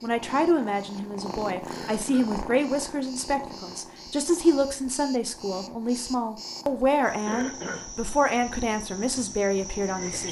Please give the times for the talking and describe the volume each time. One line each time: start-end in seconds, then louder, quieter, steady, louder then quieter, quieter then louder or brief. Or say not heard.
0.0-10.2 steady.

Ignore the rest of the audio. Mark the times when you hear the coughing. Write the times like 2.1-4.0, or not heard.
1.7-2.3, 7.2-7.8.